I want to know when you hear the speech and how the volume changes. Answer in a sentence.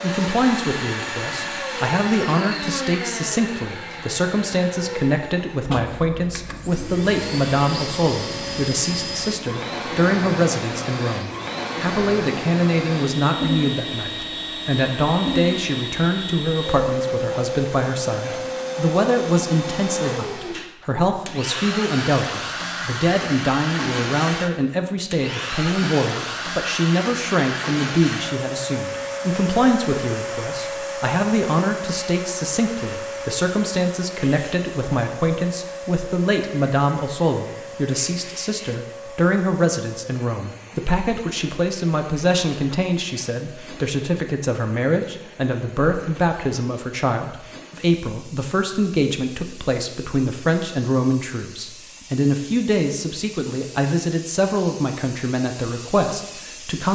You can hear the speech from 0.0 to 56.9 s, at a steady volume.